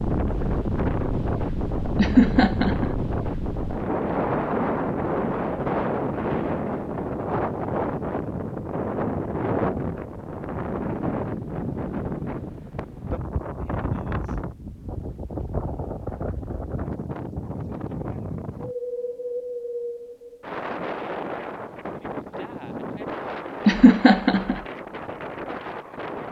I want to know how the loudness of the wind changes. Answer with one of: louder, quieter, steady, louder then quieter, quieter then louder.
quieter.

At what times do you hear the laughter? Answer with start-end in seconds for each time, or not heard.
1.9-2.9, 23.6-24.6.